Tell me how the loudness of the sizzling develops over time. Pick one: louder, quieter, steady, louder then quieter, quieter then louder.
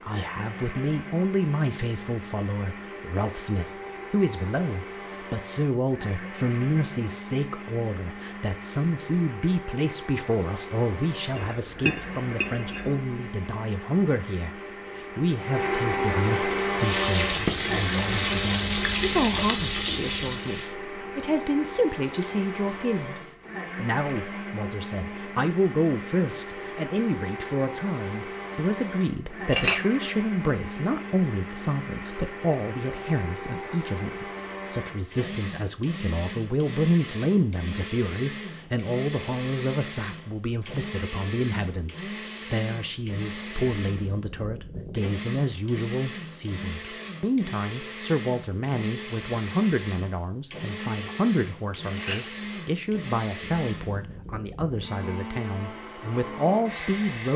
steady.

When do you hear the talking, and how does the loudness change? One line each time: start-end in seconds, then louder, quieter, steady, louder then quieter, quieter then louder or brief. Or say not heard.
0.0-14.6 steady
15.2-57.3 steady.